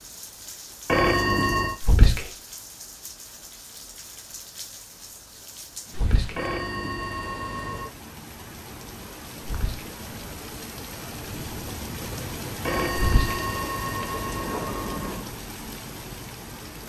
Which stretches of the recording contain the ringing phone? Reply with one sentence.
The ringing phone can be heard from 0.8 to 1.8 s, from 6.3 to 7.9 s and from 12.7 to 15.3 s.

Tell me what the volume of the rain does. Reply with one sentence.
The volume of the rain goes up.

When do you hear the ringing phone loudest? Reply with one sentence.
The volume of the ringing phone peaks at 1 second.